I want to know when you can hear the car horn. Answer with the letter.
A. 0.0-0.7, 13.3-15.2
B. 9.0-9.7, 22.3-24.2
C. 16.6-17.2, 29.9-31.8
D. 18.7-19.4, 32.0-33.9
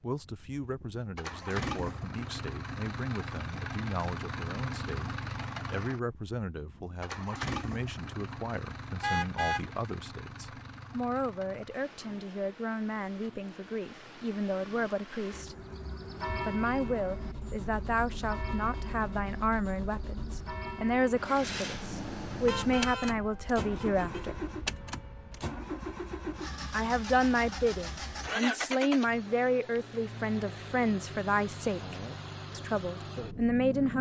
B.